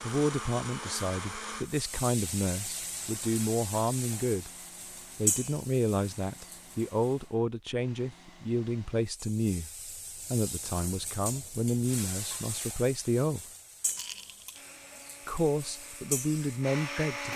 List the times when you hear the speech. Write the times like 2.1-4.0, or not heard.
0.0-4.5, 5.2-13.4, 15.2-17.3.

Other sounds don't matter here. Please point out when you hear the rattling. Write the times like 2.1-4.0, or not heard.
13.8-14.6.